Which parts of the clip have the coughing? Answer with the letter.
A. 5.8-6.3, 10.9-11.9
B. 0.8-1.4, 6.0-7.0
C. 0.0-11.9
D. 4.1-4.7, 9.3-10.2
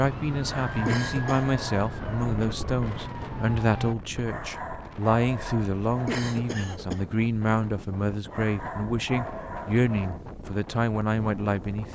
B.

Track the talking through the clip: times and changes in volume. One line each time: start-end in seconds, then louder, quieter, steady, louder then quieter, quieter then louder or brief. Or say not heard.
0.0-11.9 steady.